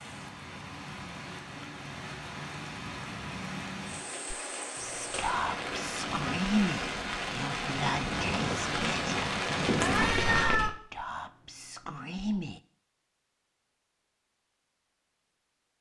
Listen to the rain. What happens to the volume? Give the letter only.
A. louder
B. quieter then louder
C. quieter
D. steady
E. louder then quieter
A.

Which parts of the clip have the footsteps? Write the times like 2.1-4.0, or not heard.
not heard.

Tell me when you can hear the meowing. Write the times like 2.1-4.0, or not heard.
9.8-10.8.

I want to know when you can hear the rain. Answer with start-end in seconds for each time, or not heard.
0.0-10.5.